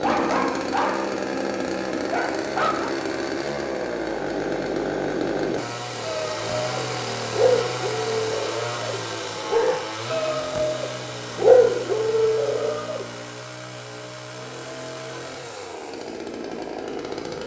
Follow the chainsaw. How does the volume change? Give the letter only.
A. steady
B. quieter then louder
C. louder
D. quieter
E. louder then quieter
D.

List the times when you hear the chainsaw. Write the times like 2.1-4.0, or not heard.
0.0-17.4.